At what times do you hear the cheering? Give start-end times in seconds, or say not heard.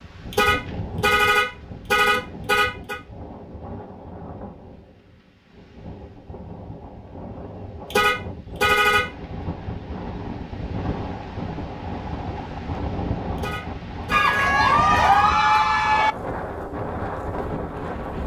14.1-16.1.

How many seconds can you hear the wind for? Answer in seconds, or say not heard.
18 s.